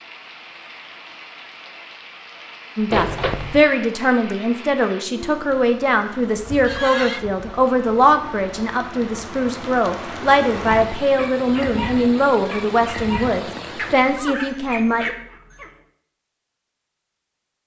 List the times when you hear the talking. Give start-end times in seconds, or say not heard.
2.8-15.2.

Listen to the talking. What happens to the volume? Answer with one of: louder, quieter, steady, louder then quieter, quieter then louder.
steady.